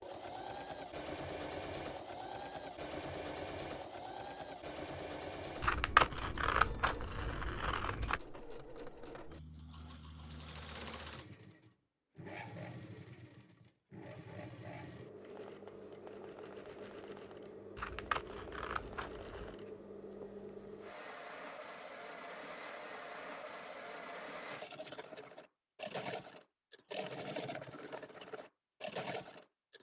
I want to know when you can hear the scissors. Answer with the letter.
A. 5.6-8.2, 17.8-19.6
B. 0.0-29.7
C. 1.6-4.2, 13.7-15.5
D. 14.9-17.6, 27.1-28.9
A.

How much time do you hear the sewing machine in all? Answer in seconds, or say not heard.
30 s.